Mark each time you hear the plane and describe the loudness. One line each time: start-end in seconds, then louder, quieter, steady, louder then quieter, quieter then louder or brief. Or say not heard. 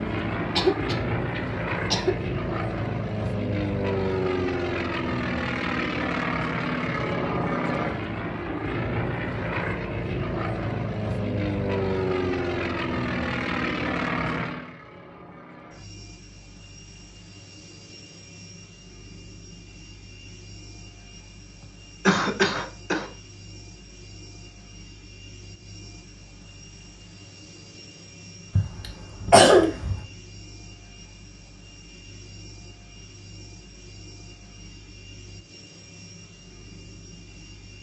0.0-37.7 quieter.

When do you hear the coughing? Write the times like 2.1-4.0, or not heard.
0.6-2.1, 21.6-23.1, 28.6-30.0.